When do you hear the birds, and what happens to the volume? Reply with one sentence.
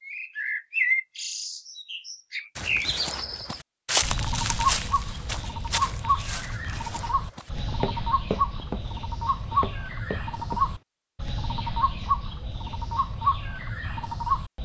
The birds can be heard from 0.0 to 14.6 s, at a steady volume.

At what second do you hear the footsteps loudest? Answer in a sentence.
The volume of the footsteps peaks at 4 seconds.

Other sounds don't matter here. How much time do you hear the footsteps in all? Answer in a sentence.
You can hear the footsteps for 8 seconds altogether.